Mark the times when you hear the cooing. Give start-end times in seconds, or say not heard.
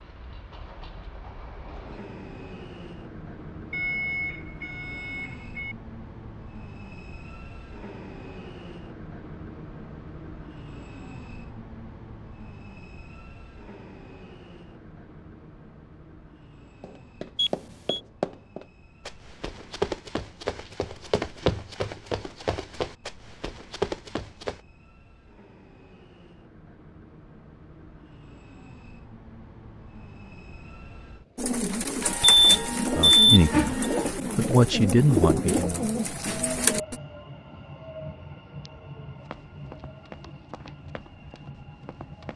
31.4-37.0.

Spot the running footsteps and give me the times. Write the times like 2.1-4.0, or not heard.
16.8-24.6, 39.2-42.3.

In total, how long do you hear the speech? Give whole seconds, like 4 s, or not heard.
3 s.